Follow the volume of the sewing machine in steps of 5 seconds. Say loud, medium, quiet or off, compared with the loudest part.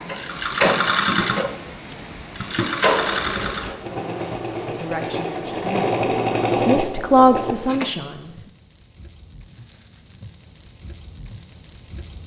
loud, loud, off.